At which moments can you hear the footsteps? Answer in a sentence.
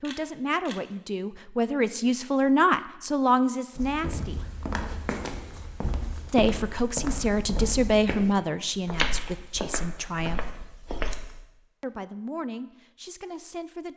You can hear the footsteps from 3.8 to 11.4 s.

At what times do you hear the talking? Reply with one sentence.
The talking can be heard from 0.0 to 4.7 s, from 6.3 to 10.6 s and from 11.8 to 13.9 s.